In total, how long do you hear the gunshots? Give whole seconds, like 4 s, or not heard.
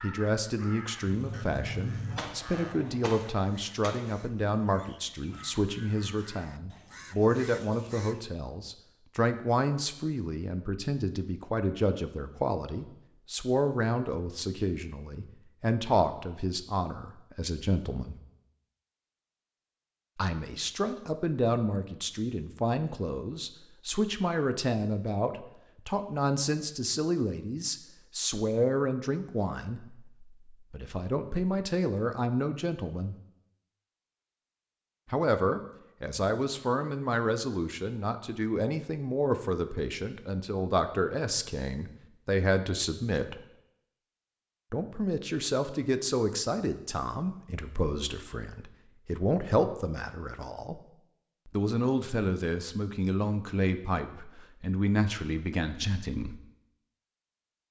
3 s.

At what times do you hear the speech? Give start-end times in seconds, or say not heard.
0.0-18.2, 20.1-33.1, 35.1-43.5, 44.7-50.9, 51.5-56.4.